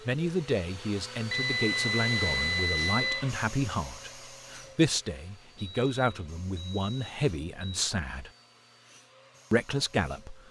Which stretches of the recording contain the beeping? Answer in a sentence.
You can hear the beeping from 1.3 to 3.2 s and from 5.5 to 8.0 s.